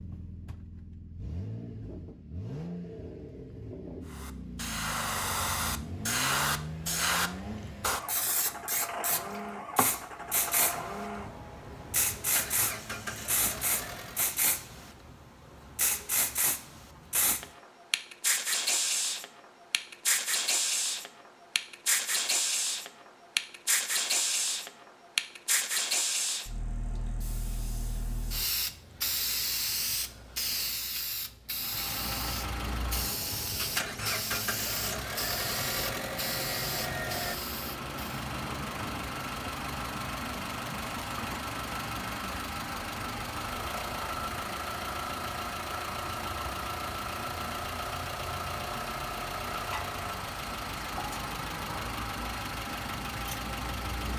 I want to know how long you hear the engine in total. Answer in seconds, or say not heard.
37 s.